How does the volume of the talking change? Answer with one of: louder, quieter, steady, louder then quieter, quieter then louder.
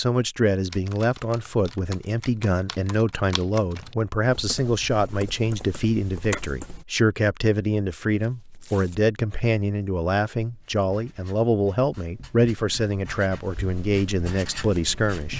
steady.